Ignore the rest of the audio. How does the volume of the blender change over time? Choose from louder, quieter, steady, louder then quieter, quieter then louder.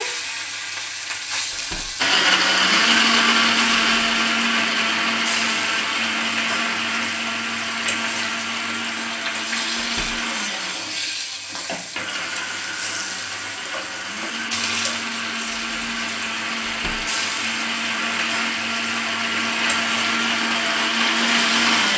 quieter then louder.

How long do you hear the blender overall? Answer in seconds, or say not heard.
20 s.